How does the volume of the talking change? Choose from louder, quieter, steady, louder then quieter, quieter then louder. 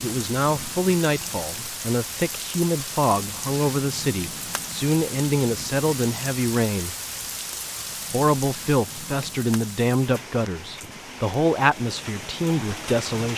steady.